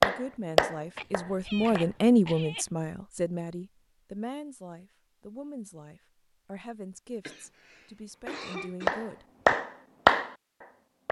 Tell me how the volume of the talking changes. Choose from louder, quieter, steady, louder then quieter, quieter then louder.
quieter.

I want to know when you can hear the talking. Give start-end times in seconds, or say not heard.
0.0-9.2.